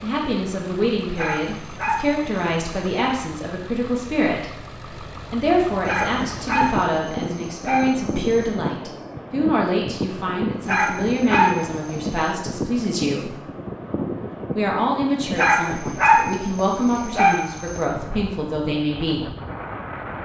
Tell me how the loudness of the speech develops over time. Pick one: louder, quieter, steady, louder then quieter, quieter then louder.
steady.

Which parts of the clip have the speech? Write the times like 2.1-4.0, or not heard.
0.0-13.3, 14.6-19.3.